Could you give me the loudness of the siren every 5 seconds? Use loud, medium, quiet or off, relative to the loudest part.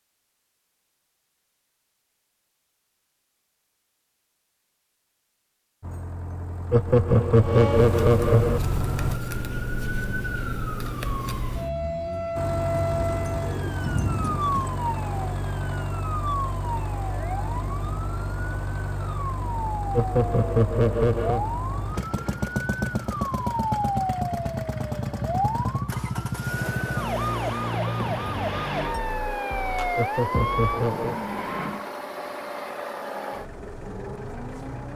off, loud, loud, medium, loud, loud, loud.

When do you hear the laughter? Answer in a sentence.
You can hear the laughter from 6.7 to 8.6 s, from 19.9 to 21.4 s and from 29.9 to 31.1 s.